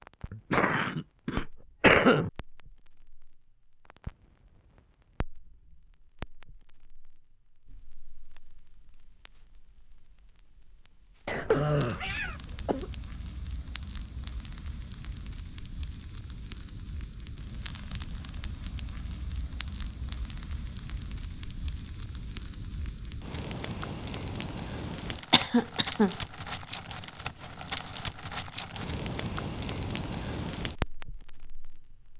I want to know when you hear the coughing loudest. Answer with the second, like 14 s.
2 s.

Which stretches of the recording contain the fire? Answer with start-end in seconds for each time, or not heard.
0.0-32.1.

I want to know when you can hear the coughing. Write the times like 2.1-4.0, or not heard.
0.3-2.3, 11.2-12.8, 25.3-26.1.